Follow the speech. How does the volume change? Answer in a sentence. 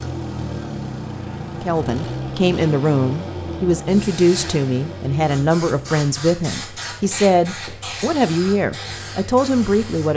The loudness of the speech stays about the same.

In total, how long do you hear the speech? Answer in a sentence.
You can hear the speech for 9 seconds altogether.